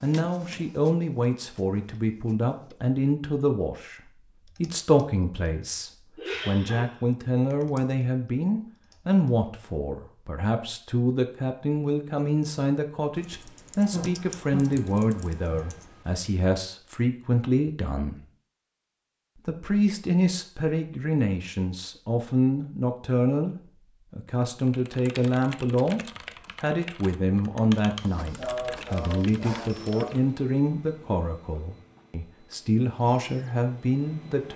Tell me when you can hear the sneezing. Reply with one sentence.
You can hear the sneezing from 6.2 to 6.8 s, from 13.9 to 15.7 s and from 28.4 to 30.1 s.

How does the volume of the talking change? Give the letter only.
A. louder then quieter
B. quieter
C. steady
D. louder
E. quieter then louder
C.